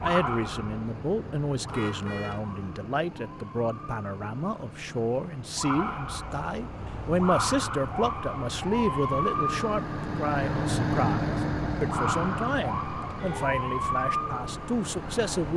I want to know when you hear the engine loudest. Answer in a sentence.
The loudest moment of the engine is at 11 seconds.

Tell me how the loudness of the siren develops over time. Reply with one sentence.
The volume of the siren goes up.